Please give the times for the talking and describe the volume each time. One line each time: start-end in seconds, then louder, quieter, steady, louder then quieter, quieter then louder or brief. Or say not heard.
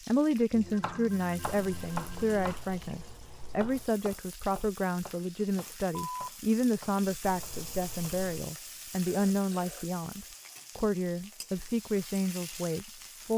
0.1-13.3 steady.